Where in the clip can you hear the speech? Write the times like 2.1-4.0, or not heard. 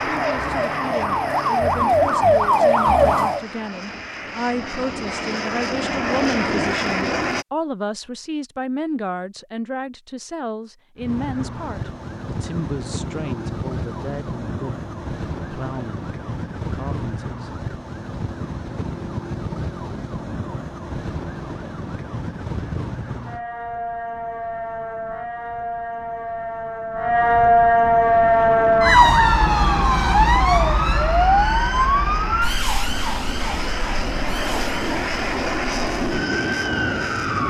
0.1-17.6.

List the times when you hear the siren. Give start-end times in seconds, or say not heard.
0.0-3.5, 10.9-37.4.